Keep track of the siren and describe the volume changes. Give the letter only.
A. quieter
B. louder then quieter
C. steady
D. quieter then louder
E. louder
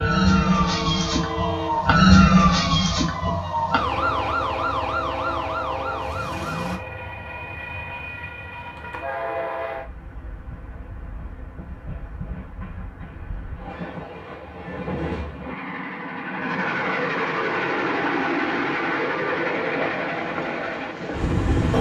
B.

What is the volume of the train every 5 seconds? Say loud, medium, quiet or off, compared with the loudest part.
medium, medium, quiet, loud, loud.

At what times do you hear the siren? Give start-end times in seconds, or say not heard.
0.0-6.8.